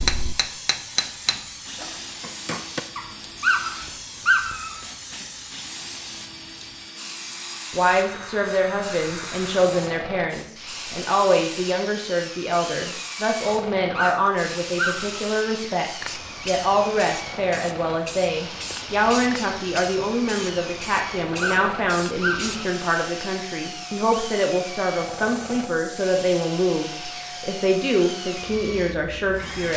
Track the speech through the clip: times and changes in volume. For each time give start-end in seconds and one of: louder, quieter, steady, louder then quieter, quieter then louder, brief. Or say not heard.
7.7-29.7 steady.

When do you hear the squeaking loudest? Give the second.
4 s.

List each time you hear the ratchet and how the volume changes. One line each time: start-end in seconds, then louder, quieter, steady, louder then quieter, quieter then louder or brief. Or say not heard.
not heard.